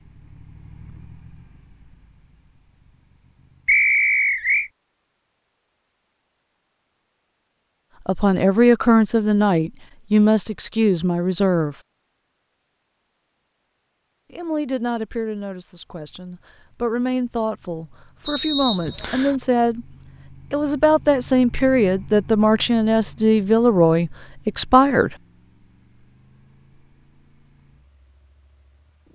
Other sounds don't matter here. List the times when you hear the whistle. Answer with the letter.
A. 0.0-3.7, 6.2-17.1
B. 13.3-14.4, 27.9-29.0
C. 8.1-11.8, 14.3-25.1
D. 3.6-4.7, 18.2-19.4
D.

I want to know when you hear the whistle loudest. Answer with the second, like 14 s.
4 s.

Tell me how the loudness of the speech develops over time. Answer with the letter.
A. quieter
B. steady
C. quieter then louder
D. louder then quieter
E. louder
C.